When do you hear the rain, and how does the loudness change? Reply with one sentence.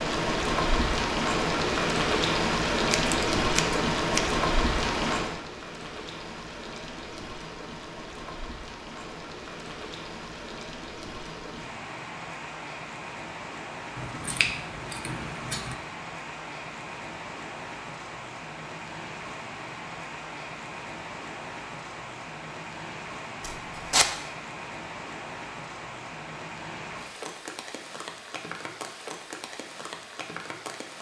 The rain can be heard from 0.0 to 30.9 s, getting quieter.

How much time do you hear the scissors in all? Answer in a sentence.
You can hear the scissors for 4 seconds altogether.